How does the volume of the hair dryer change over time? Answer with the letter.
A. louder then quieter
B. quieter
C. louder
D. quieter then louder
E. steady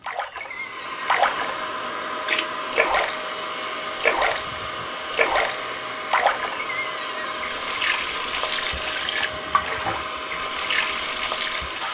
E.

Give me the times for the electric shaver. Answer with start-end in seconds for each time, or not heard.
not heard.